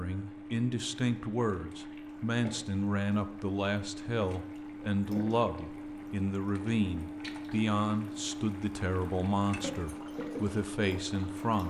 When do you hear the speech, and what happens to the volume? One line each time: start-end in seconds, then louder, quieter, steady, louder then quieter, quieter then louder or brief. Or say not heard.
0.0-11.6 steady.